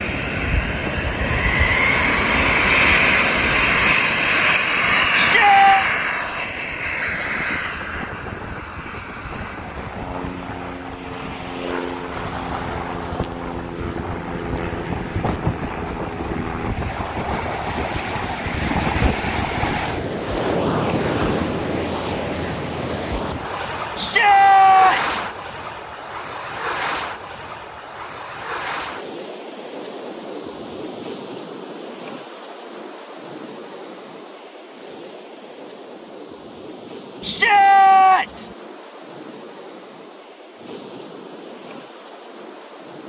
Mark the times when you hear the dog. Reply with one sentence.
You can't hear the dog here.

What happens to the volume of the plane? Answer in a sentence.
The volume of the plane goes down.